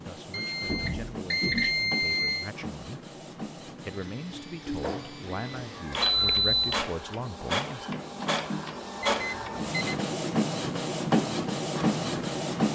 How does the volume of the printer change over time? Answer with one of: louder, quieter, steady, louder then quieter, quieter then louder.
louder.